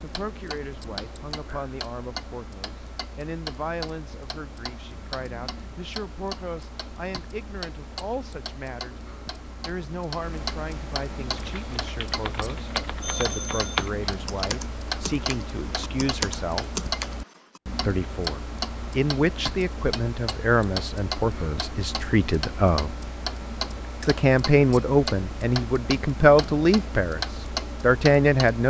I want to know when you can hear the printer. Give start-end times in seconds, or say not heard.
not heard.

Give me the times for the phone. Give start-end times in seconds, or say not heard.
13.0-13.9.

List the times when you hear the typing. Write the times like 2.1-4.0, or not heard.
11.2-17.6.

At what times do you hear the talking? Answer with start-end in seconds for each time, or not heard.
0.0-9.0, 9.6-16.6, 17.8-22.9, 24.0-27.2, 27.8-28.6.